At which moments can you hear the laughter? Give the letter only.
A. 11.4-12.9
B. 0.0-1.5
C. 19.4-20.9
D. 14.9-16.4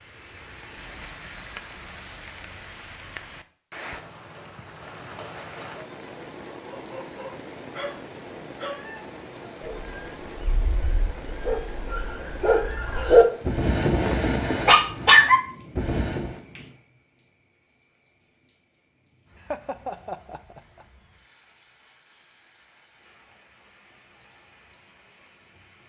C.